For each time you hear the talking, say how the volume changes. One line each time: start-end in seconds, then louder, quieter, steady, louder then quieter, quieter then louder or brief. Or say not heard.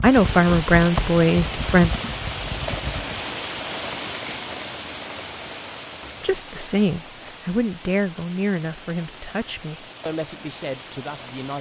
0.0-1.9 brief
6.2-11.5 quieter.